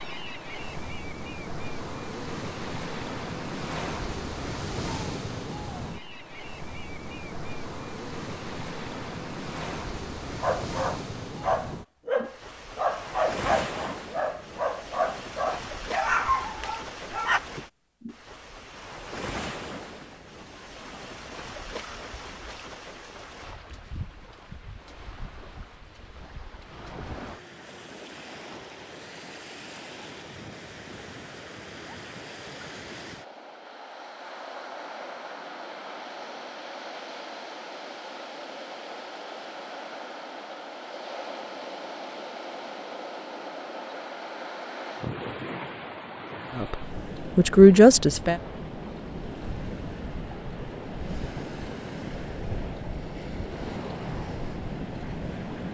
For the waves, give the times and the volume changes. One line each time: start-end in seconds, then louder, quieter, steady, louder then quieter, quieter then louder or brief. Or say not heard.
0.0-55.6 quieter then louder.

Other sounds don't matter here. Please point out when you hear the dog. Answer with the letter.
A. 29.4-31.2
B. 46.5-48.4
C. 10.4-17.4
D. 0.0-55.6
C.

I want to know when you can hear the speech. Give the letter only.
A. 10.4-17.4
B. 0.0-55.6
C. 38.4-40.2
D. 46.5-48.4
D.